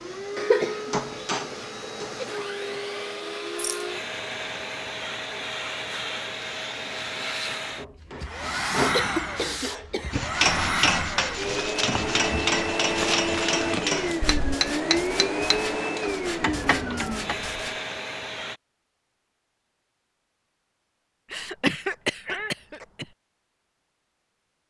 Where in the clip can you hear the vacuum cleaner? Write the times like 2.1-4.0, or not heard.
0.0-18.6.